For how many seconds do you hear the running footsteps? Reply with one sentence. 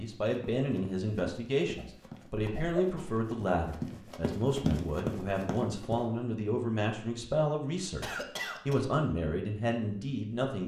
The running footsteps can be heard for 6 seconds in total.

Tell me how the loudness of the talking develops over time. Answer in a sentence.
The volume of the talking stays about the same.